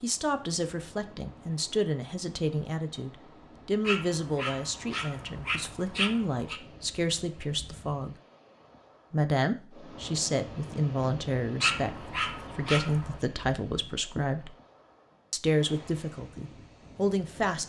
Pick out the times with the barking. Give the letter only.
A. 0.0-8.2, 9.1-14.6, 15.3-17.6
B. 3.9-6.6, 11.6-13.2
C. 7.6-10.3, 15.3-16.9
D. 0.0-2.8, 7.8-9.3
B.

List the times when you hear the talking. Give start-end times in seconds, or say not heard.
0.0-8.2, 9.1-14.6, 15.3-17.6.